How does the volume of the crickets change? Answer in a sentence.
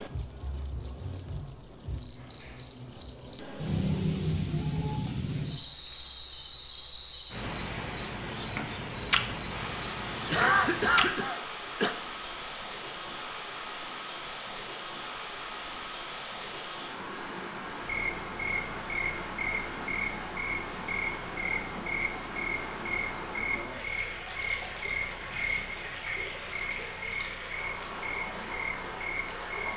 The volume of the crickets goes down.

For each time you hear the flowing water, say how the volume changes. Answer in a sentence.
You can hear the flowing water from 9.5 to 29.7 s, at a steady volume.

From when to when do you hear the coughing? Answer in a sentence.
The coughing can be heard from 10.2 to 11.9 s.